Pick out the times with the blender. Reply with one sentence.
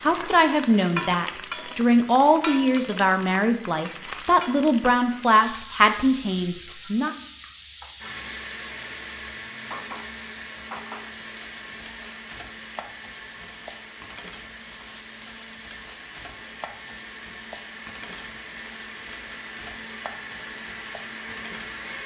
You can hear the blender from 8.0 to 22.0 s.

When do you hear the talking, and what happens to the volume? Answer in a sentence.
You can hear the talking from 0.0 to 7.2 s, at a steady volume.